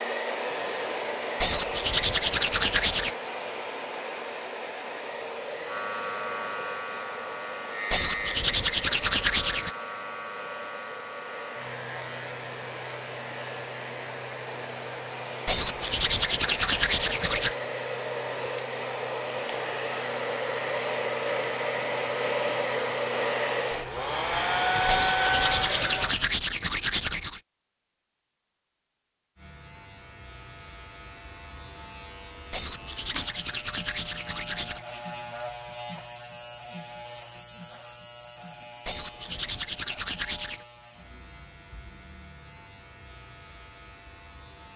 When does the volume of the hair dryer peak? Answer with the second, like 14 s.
25 s.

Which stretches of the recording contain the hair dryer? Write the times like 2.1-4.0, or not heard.
0.0-26.1.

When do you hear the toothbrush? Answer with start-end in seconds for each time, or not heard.
1.4-3.1, 7.9-9.7, 15.4-17.6, 24.9-27.4, 32.5-34.8, 38.9-40.6.